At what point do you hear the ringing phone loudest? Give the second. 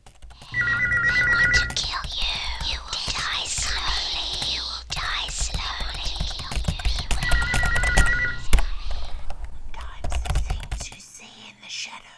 1 s.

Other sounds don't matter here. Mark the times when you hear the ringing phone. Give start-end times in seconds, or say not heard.
0.5-1.8, 7.2-8.5.